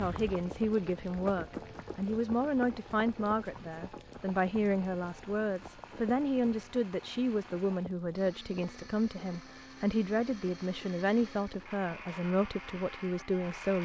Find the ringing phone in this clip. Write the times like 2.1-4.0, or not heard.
not heard.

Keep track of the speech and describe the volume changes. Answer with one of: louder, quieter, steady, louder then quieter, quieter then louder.
steady.